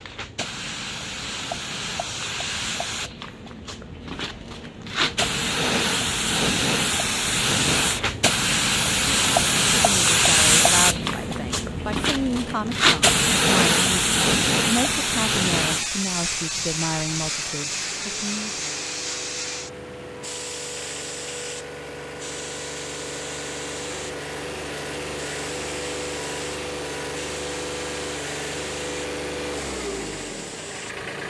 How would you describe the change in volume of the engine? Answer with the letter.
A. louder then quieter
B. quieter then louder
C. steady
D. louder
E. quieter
D.